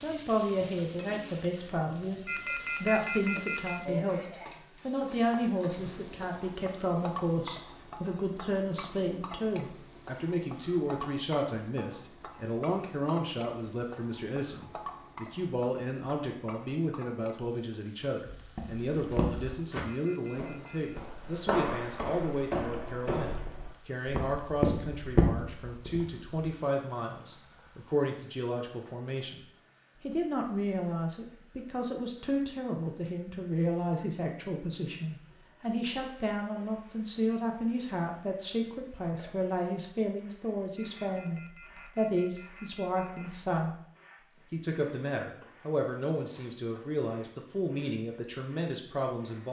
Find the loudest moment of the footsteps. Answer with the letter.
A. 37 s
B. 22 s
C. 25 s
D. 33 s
C.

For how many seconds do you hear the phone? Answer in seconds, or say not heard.
5 s.